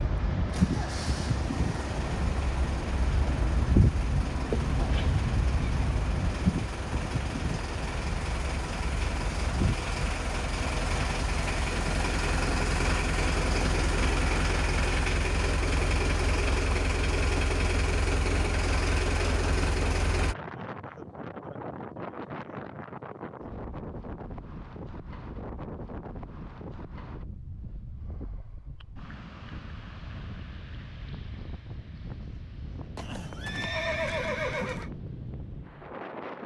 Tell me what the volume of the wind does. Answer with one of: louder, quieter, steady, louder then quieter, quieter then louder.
quieter.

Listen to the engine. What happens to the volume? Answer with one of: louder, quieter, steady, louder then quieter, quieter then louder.
louder.